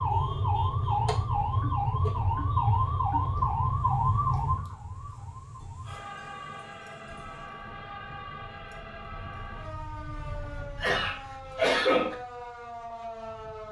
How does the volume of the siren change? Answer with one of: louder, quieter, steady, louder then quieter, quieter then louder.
quieter.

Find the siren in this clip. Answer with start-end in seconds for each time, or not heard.
0.0-13.6.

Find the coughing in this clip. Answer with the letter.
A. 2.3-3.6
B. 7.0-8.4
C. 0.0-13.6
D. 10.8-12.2
D.